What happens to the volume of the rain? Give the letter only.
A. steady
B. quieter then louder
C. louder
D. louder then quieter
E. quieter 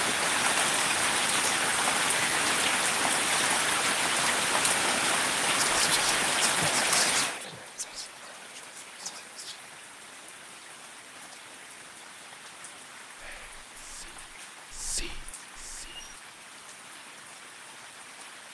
E.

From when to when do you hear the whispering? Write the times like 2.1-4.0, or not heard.
5.5-9.6, 13.2-16.1.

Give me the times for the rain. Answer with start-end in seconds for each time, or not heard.
0.0-18.4.